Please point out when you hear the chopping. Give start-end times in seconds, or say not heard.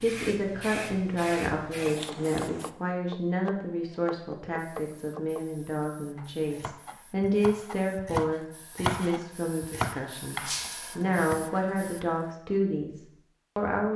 1.6-12.1.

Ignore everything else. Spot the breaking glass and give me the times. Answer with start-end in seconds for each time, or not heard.
10.4-10.9.